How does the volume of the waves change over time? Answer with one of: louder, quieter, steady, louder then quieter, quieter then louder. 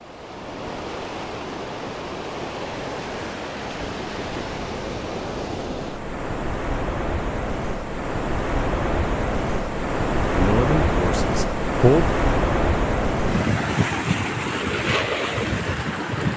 louder.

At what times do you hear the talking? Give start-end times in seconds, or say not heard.
10.3-12.1.